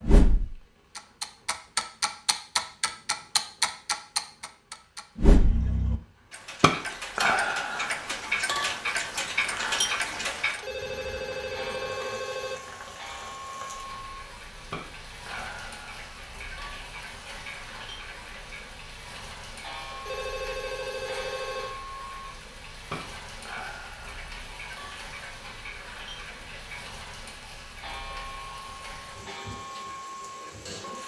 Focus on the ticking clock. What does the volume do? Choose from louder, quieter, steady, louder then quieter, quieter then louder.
quieter.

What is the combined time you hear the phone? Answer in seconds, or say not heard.
4 s.